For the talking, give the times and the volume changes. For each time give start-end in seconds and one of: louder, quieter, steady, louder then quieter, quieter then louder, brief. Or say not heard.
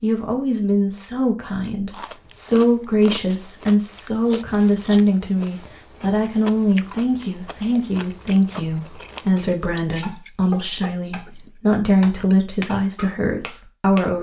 0.0-14.1 steady.